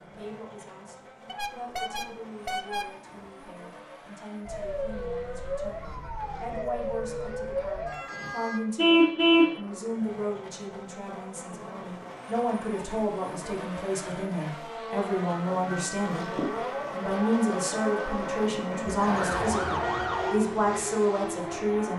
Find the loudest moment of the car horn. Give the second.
9 s.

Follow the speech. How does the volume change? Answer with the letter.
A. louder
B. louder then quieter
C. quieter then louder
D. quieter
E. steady
A.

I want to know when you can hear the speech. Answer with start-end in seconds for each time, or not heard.
0.0-21.9.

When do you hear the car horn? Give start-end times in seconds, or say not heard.
1.2-3.3, 8.8-9.6, 18.9-20.4.